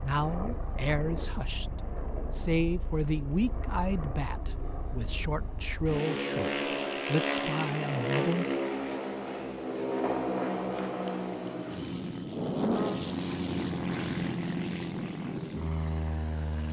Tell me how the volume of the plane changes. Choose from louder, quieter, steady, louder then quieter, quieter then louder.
louder.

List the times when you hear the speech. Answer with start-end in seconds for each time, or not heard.
0.0-8.4.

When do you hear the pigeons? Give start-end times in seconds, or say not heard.
not heard.